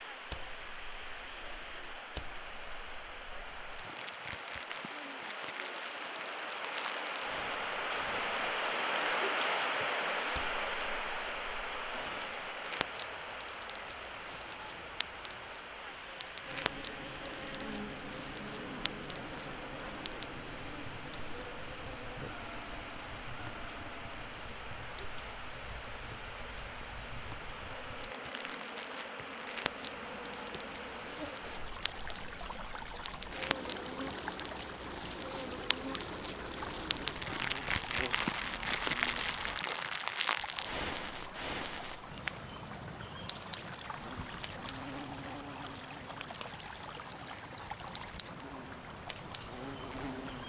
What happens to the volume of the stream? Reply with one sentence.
The volume of the stream goes down.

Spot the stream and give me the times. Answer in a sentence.
The stream can be heard from 0.0 to 50.4 s.